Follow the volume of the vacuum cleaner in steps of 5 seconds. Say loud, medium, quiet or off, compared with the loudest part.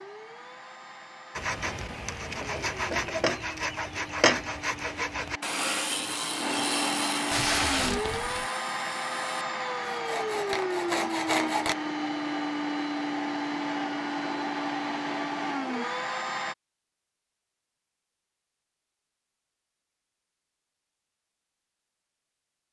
quiet, loud, loud, loud, off.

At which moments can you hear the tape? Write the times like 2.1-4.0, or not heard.
7.3-8.4.